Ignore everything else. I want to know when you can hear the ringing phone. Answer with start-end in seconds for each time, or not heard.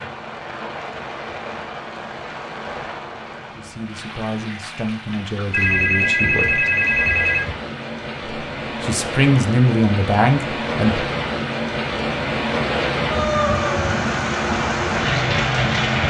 5.5-7.5.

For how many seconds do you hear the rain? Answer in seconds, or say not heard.
16 s.